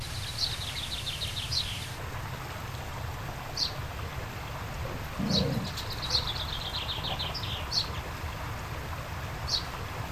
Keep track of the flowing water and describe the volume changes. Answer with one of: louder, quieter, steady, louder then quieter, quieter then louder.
steady.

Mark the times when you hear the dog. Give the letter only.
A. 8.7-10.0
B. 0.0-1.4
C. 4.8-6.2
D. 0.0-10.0
C.